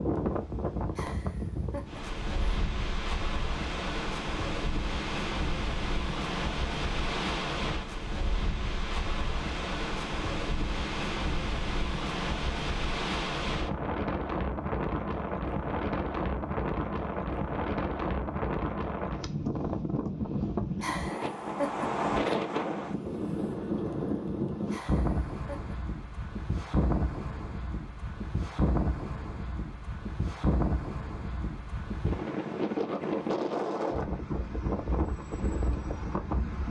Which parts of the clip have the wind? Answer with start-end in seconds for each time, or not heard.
0.0-36.6.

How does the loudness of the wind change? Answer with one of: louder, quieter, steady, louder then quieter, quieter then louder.
steady.